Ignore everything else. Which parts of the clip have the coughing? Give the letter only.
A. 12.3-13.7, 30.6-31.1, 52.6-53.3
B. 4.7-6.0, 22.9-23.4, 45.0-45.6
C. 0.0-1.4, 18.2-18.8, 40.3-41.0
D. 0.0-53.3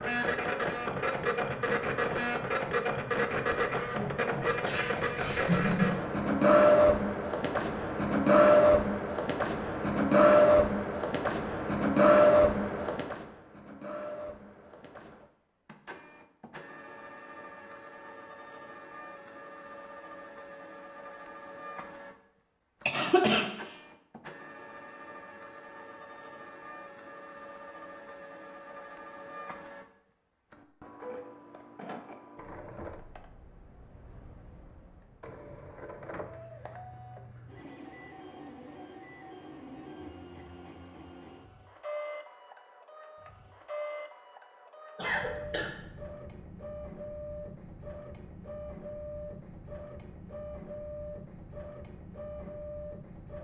B.